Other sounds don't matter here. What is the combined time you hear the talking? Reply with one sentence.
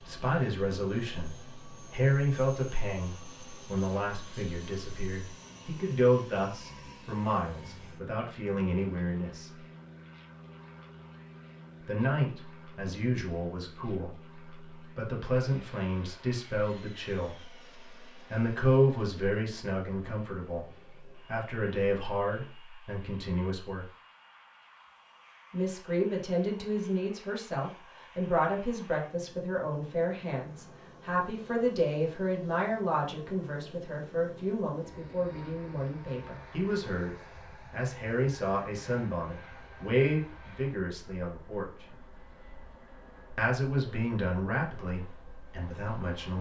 The talking can be heard for 41 seconds in total.